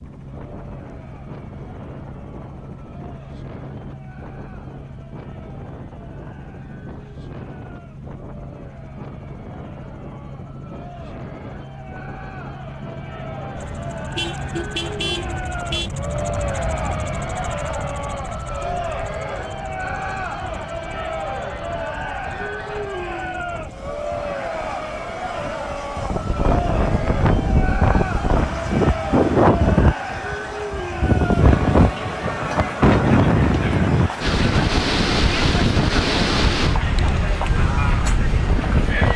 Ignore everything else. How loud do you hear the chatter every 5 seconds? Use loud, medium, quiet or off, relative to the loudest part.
quiet, quiet, medium, loud, loud, loud, loud, loud.